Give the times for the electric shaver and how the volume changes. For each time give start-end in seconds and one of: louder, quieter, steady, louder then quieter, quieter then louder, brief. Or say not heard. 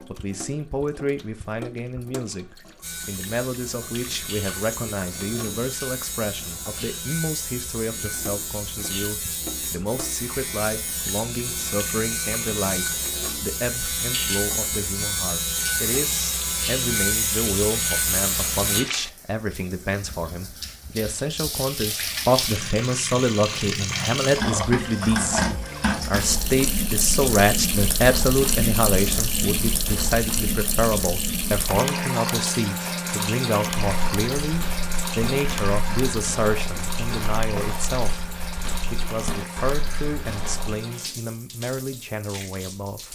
2.8-18.9 louder.